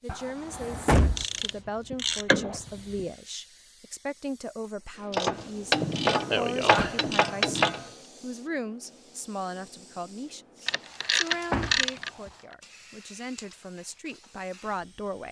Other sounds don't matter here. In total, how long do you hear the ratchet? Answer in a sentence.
You can hear the ratchet for 6 seconds altogether.